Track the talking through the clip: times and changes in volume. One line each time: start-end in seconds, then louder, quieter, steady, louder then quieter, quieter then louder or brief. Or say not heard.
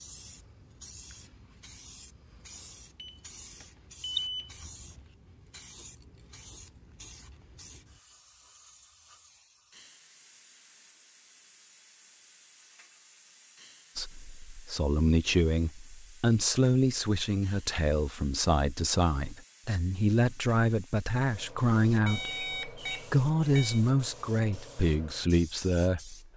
13.9-26.1 steady.